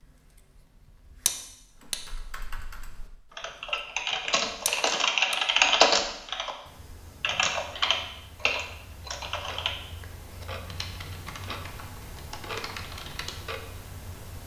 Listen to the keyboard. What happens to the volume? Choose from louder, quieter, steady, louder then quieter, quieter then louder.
louder then quieter.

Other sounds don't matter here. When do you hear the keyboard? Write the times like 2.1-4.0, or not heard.
1.8-13.5.